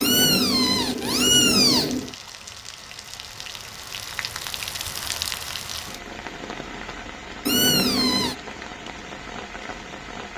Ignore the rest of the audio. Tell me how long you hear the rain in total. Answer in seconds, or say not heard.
10 s.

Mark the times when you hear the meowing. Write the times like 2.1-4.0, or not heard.
0.0-2.1, 7.5-8.3.